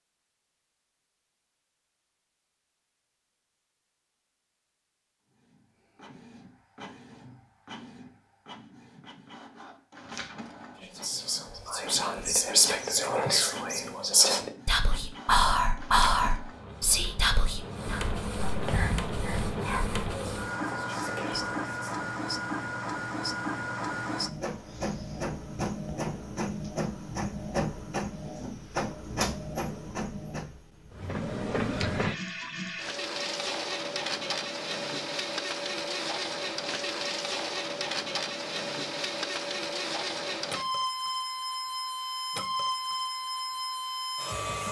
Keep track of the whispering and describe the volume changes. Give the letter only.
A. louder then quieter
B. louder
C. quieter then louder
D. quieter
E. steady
D.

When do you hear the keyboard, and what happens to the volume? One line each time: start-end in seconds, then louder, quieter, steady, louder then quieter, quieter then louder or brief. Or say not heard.
not heard.